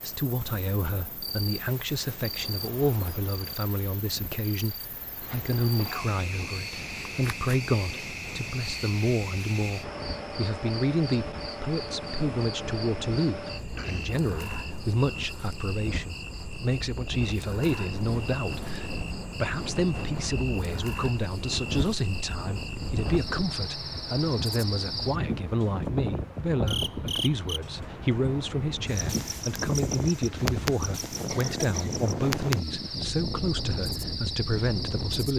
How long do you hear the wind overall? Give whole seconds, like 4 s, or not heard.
35 s.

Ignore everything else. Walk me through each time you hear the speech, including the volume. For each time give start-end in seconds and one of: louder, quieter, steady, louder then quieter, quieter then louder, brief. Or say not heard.
0.0-35.3 steady.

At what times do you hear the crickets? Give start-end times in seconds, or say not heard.
0.0-35.3.